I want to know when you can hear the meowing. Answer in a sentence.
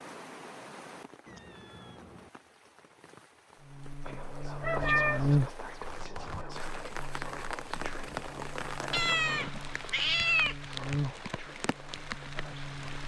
You can hear the meowing from 1.2 to 2.3 s, from 4.6 to 5.2 s and from 8.9 to 10.6 s.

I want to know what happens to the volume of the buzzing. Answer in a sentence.
The volume of the buzzing goes down, then up.